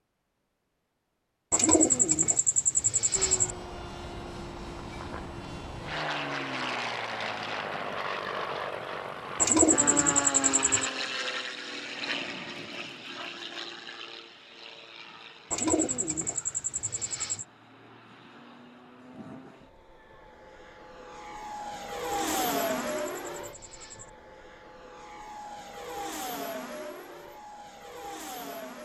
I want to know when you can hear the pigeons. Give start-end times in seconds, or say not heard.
1.5-3.5, 9.3-10.9, 15.5-17.4, 22.1-24.1.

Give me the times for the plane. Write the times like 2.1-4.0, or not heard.
3.1-28.8.